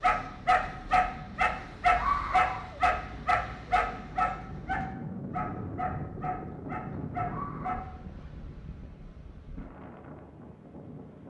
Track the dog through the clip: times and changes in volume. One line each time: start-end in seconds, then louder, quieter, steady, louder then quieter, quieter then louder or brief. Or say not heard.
0.0-7.8 quieter.